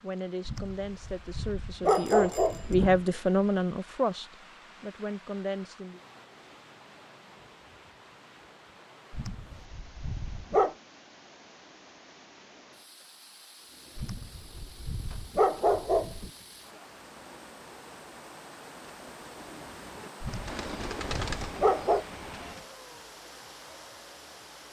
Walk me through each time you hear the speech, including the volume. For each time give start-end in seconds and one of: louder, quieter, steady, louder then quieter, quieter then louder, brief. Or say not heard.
0.0-6.0 louder then quieter.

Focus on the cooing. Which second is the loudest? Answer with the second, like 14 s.
21 s.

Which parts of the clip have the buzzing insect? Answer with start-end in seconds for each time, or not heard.
not heard.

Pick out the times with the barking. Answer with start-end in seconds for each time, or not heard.
0.5-3.0, 9.1-10.8, 13.9-16.3, 20.2-22.1.